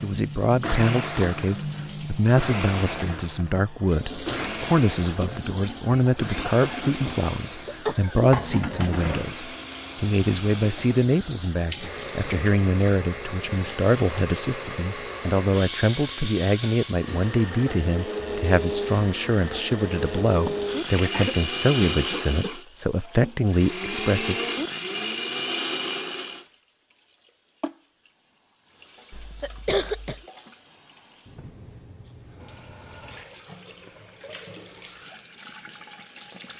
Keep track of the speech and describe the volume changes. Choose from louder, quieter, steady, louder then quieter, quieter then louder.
steady.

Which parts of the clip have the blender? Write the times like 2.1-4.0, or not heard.
0.0-26.4.